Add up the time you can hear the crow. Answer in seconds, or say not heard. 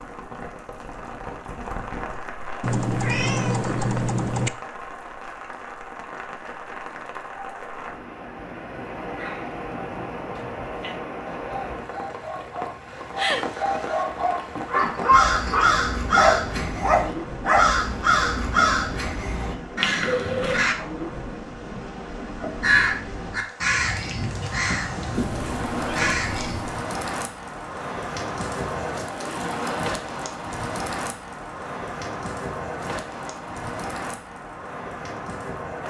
10 s.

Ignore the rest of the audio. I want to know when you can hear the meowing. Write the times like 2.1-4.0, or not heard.
2.6-4.5, 13.2-14.1, 25.1-26.8.